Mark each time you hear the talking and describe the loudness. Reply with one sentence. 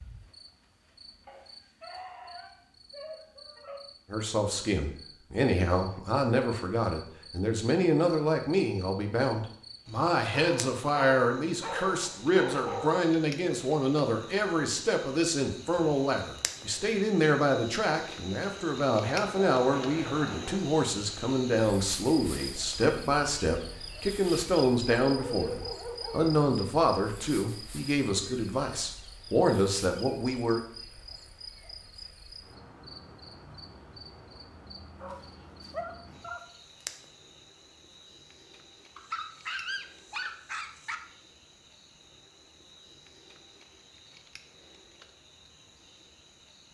The talking can be heard from 4.1 to 30.6 s, at a steady volume.